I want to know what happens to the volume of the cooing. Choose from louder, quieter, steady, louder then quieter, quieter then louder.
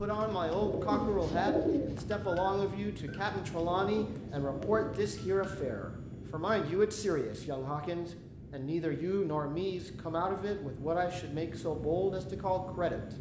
quieter then louder.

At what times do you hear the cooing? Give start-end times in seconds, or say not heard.
0.3-5.5.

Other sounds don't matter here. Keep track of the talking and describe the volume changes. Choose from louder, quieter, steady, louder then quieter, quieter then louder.
steady.